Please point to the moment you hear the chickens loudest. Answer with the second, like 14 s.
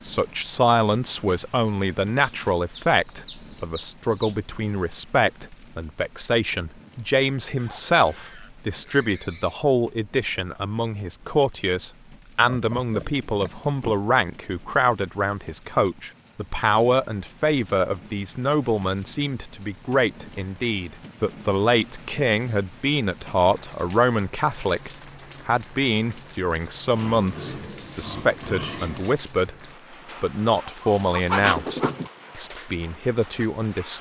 31 s.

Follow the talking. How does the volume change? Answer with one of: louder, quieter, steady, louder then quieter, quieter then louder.
steady.